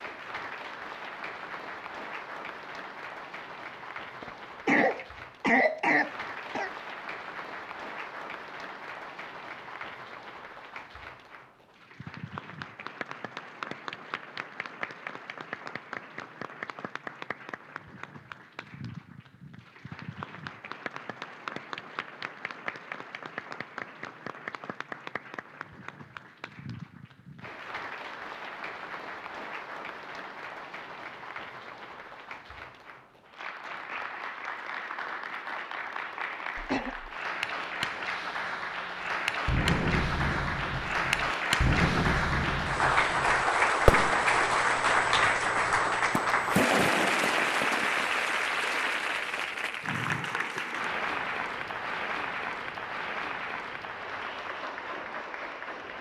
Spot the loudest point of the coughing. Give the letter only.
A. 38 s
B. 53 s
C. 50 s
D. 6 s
D.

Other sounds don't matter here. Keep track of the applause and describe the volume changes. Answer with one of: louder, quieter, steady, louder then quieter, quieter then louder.
louder.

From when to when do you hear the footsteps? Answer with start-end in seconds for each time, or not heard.
not heard.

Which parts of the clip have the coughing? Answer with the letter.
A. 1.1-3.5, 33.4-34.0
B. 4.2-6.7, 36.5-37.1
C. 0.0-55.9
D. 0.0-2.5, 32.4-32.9
B.